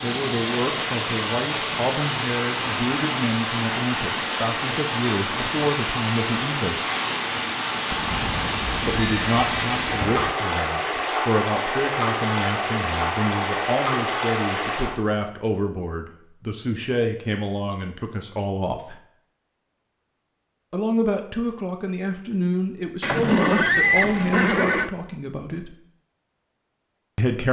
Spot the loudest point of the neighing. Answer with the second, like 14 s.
24 s.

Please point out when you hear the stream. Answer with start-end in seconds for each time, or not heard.
0.0-15.0.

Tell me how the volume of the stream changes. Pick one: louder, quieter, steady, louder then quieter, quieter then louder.
steady.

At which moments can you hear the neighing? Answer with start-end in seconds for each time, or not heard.
7.9-10.3, 23.0-24.9.